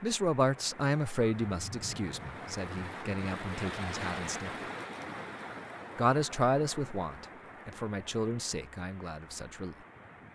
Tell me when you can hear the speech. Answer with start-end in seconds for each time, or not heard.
0.0-4.5, 6.0-9.8.